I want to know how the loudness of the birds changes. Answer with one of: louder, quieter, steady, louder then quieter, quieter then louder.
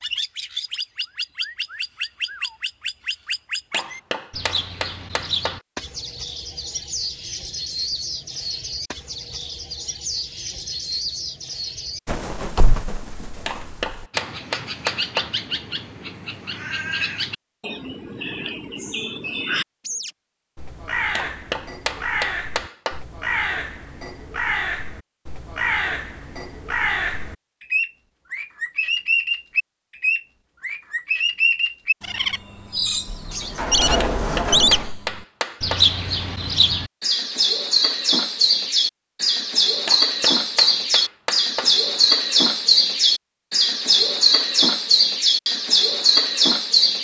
louder.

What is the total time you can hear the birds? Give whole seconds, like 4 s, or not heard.
47 s.